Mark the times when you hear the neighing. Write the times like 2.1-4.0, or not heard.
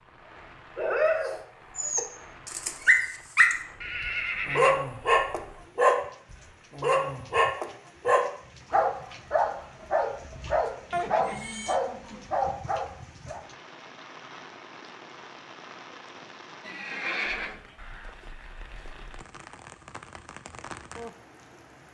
3.8-4.8, 10.9-11.8, 16.6-17.6.